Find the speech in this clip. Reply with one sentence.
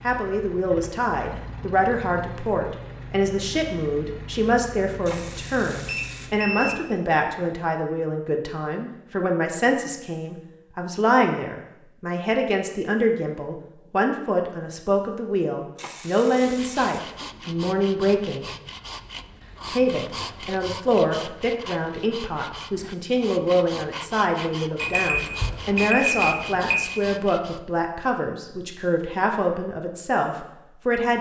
The speech can be heard from 0.0 to 18.5 s and from 19.7 to 31.1 s.